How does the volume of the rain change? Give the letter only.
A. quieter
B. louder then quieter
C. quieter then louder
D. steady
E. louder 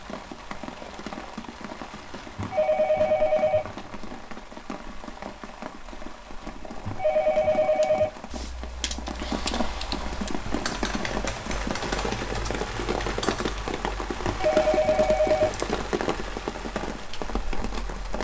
E.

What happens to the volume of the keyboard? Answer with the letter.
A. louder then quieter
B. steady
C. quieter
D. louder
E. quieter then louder
B.